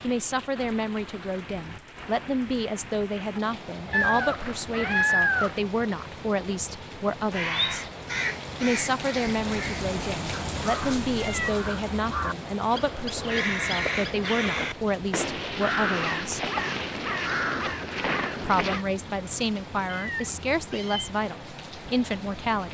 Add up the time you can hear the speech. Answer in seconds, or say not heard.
20 s.